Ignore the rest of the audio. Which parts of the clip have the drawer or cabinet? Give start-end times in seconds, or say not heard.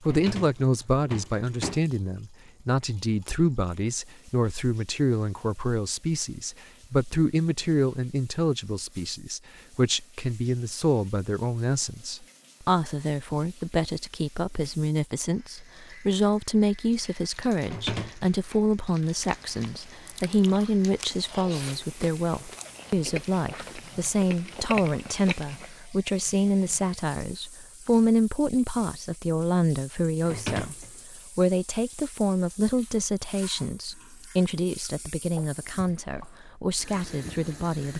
0.1-1.9, 17.6-18.4, 30.2-30.9.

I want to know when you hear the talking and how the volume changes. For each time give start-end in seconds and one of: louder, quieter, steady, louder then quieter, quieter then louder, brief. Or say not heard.
0.0-37.9 steady.